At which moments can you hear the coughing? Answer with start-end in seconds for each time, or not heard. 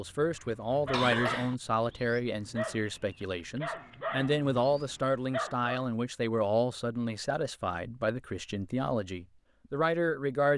0.9-1.6.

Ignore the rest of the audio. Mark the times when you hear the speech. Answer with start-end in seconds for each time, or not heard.
0.0-10.5.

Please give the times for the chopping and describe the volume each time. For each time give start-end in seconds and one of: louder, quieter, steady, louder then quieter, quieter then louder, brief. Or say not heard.
not heard.